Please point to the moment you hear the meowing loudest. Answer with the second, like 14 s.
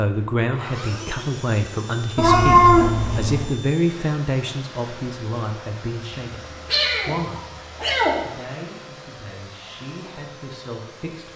3 s.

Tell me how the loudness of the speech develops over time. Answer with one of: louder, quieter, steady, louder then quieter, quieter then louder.
quieter.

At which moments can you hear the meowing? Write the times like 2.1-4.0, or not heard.
2.1-3.5, 6.1-8.2.